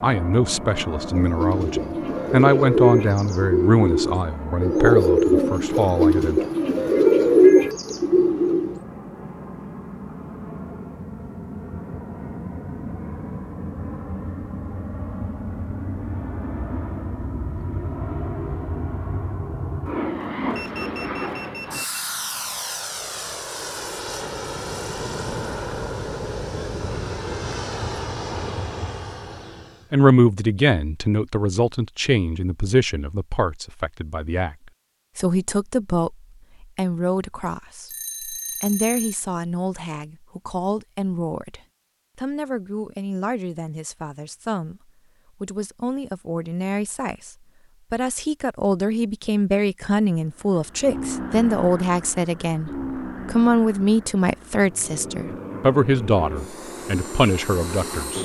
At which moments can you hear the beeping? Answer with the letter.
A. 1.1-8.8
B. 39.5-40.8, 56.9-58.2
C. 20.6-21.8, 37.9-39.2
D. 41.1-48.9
C.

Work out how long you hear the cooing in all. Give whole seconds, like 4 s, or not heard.
8 s.